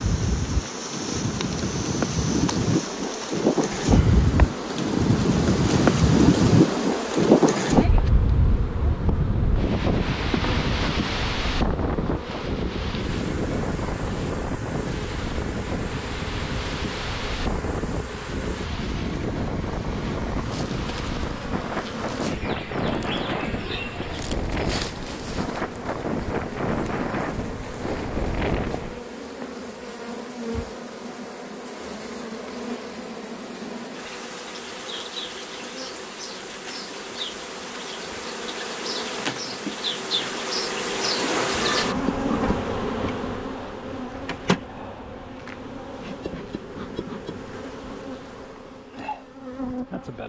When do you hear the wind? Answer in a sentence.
You can hear the wind from 0.0 to 29.1 s.